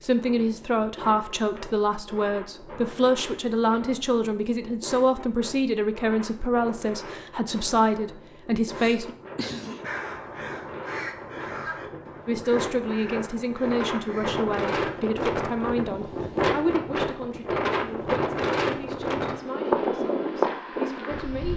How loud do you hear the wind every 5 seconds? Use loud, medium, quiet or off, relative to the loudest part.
quiet, quiet, medium, loud, loud.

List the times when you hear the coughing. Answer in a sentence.
The coughing can be heard from 8.8 to 9.9 s.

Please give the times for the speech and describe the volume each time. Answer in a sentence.
You can hear the speech from 0.0 to 9.2 s, at a steady volume; and from 12.2 to 21.5 s, getting quieter.